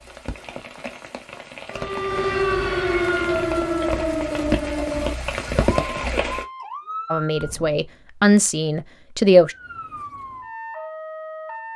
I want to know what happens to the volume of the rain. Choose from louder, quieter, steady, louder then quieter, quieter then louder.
louder.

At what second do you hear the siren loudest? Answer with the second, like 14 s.
3 s.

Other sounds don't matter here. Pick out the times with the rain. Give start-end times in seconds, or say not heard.
0.0-6.5.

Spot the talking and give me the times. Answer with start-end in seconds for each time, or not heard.
7.1-9.6.